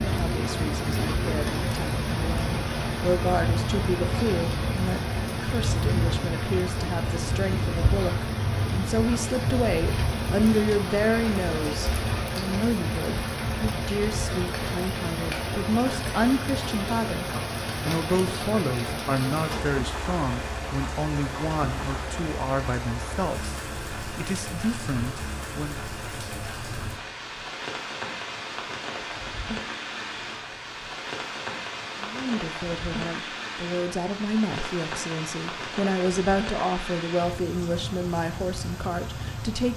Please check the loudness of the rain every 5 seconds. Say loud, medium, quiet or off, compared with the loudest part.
loud, loud, loud, loud, medium, medium, medium, medium.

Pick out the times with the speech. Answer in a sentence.
The speech can be heard from 0.0 to 25.9 s and from 32.0 to 39.7 s.